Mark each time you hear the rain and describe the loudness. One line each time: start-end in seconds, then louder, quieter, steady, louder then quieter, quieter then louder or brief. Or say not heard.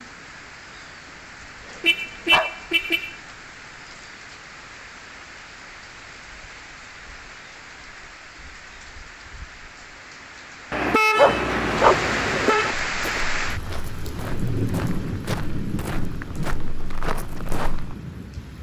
0.0-18.5 louder.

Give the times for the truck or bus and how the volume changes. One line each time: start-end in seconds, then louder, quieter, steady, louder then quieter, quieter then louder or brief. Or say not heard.
not heard.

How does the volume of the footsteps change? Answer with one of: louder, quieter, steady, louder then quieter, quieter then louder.
louder.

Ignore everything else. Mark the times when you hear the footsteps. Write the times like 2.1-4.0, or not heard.
12.9-17.9.